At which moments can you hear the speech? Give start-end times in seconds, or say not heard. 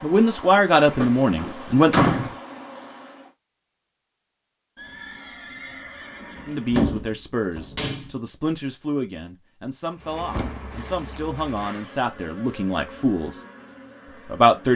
0.0-2.0, 6.5-13.4, 14.2-14.7.